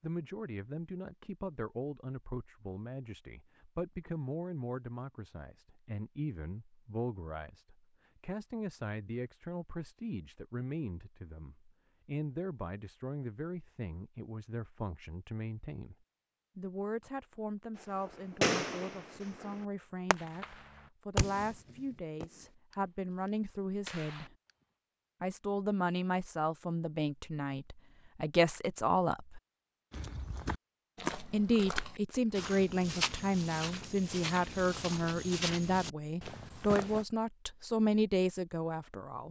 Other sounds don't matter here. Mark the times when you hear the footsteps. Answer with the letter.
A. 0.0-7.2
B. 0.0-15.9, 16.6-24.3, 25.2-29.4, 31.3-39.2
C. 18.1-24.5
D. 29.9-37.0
D.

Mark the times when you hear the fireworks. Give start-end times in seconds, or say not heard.
18.1-24.5.